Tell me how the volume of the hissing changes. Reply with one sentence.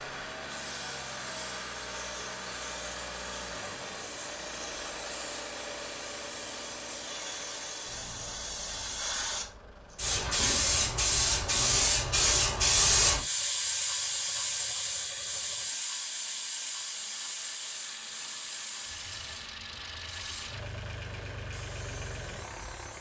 The loudness of the hissing goes up, then down.